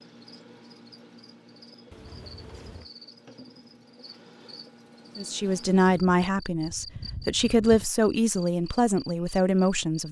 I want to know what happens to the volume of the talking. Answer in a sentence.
The volume of the talking goes down, then up.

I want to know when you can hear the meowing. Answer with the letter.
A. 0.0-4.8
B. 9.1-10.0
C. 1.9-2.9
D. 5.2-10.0
C.